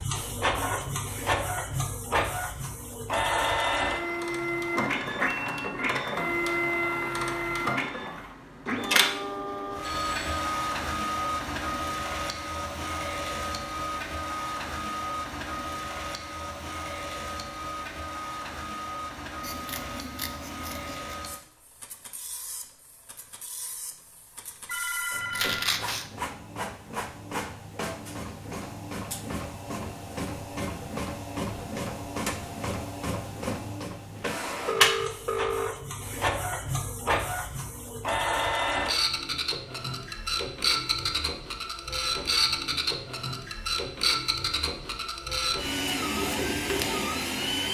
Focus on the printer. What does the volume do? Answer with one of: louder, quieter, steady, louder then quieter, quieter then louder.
quieter then louder.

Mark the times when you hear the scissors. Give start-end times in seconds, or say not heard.
19.4-21.1, 25.3-26.1.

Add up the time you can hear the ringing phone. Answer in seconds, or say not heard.
3 s.